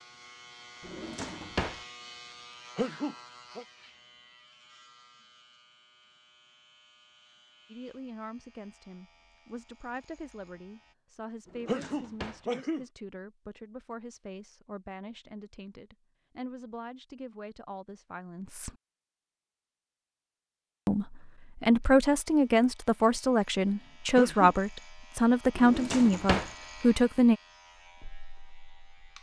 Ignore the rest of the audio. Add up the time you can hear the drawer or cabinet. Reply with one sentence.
The drawer or cabinet can be heard for 3 seconds in total.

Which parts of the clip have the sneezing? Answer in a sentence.
The sneezing can be heard from 2.8 to 3.6 s, from 11.7 to 12.8 s and from 24.1 to 24.6 s.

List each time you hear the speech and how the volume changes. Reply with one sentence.
You can hear the speech from 7.7 to 18.7 s, at a steady volume; and from 20.9 to 27.4 s, at a steady volume.